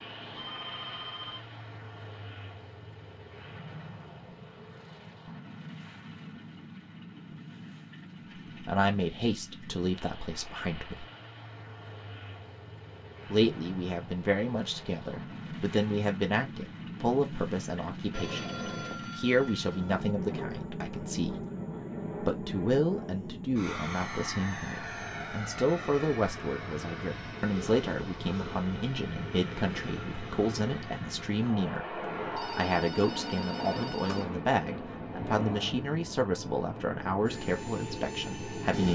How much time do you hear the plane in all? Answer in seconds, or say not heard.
39 s.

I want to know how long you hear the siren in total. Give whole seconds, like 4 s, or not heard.
not heard.